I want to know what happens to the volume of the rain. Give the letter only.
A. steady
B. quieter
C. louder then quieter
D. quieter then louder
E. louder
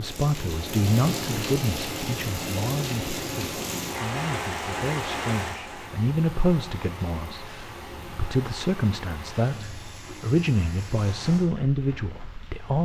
B.